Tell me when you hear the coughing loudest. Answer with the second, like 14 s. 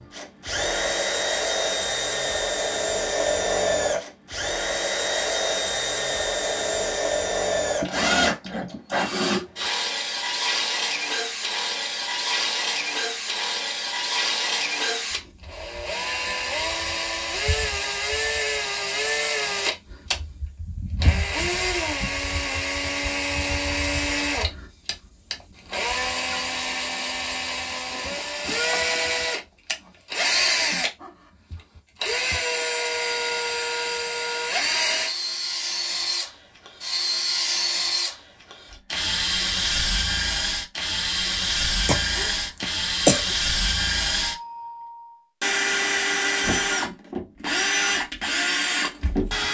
43 s.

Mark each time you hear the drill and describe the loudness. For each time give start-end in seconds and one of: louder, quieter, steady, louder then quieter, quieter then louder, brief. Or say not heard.
0.0-49.4 steady.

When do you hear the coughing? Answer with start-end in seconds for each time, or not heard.
41.9-43.4.